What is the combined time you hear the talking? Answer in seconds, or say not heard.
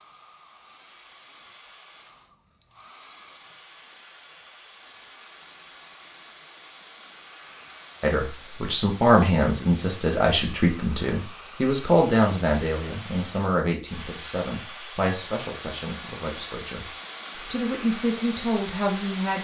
11 s.